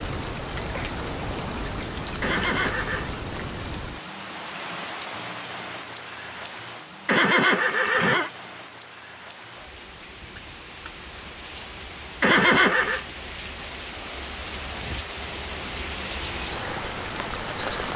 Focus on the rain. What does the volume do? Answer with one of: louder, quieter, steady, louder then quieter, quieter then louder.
quieter then louder.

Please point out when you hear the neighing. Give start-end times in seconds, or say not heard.
2.2-3.1, 7.0-8.3, 12.2-13.1.